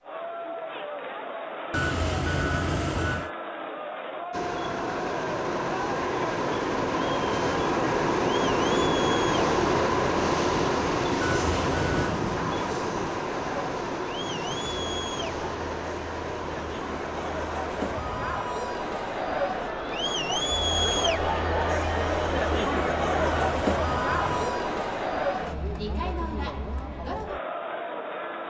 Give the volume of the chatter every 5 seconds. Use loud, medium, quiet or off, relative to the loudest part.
medium, medium, medium, medium, loud, medium.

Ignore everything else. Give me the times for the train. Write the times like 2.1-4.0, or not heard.
4.3-18.4.